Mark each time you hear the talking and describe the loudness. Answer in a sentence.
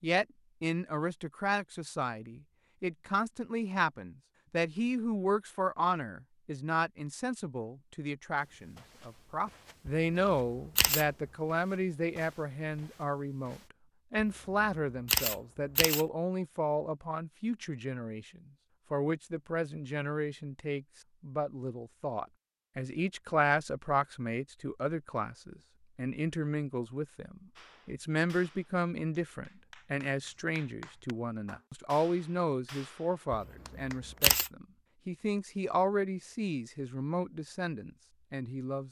You can hear the talking from 0.0 to 38.8 s, at a steady volume.